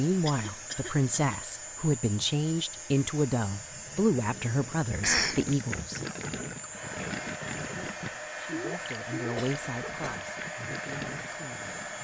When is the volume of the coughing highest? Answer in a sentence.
The volume of the coughing peaks at 5 seconds.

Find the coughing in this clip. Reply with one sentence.
You can hear the coughing from 0.2 to 1.1 s, from 5.0 to 5.4 s and from 9.3 to 10.1 s.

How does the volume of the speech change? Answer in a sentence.
The volume of the speech goes down.